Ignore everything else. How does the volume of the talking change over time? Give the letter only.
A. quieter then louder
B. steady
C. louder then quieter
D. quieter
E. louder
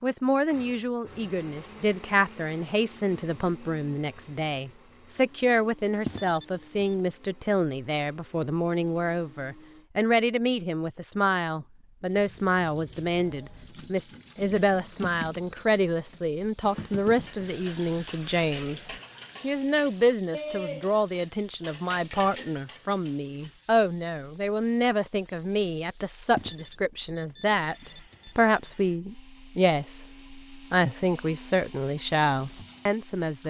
B.